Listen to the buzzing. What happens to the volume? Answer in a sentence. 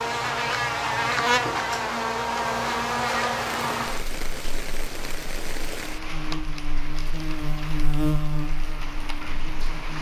The loudness of the buzzing goes down, then up.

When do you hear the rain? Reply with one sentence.
The rain can be heard from 3.3 to 9.9 s.